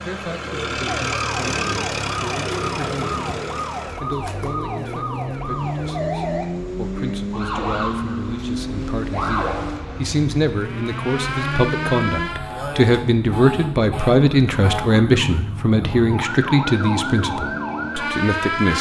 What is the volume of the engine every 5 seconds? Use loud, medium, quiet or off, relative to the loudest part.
loud, loud, loud, off.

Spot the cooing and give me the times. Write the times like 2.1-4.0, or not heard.
0.2-6.3.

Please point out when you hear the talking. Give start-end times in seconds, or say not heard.
0.0-3.1, 4.0-18.7.